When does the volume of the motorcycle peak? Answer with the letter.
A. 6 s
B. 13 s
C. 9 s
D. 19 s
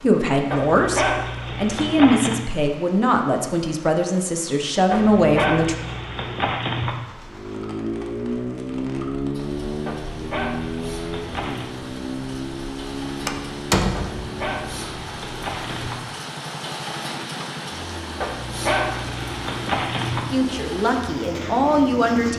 C.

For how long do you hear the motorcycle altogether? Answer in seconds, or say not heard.
15 s.